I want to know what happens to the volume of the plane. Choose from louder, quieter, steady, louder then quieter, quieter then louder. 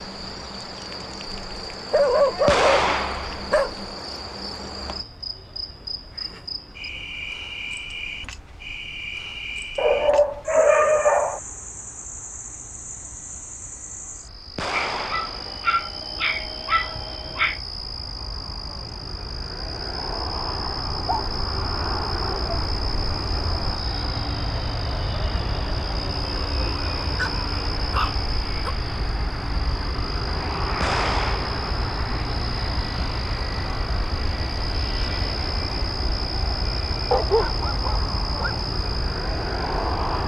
louder.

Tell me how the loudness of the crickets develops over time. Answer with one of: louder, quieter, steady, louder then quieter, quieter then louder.
steady.